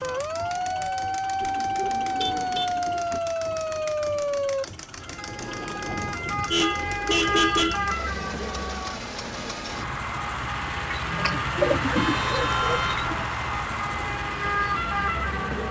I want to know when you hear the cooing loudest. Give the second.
12 s.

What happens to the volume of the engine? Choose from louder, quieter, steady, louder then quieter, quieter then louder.
louder.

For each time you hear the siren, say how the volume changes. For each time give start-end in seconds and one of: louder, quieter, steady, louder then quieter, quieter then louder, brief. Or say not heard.
0.0-15.6 quieter then louder.